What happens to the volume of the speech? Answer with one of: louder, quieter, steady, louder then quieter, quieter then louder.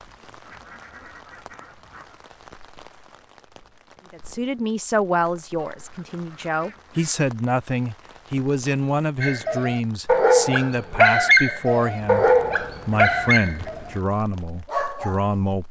steady.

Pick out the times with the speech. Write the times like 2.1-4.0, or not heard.
4.1-15.6.